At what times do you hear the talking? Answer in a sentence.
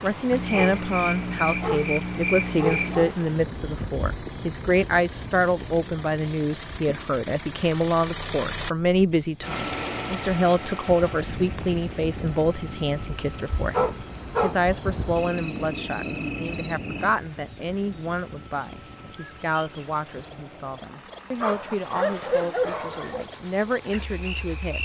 You can hear the talking from 0.0 to 24.8 s.